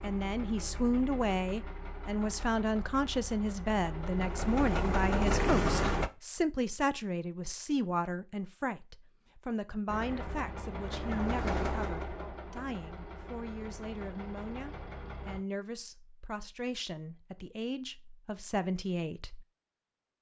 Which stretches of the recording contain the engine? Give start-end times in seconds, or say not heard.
0.0-6.1, 9.8-15.4.